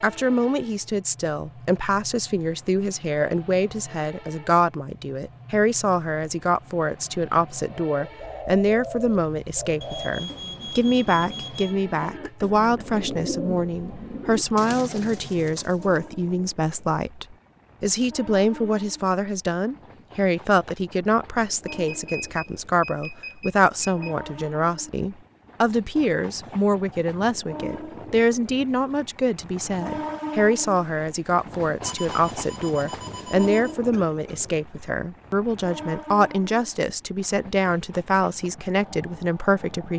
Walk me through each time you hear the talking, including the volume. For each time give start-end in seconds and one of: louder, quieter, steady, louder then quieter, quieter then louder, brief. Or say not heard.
0.0-39.9 steady.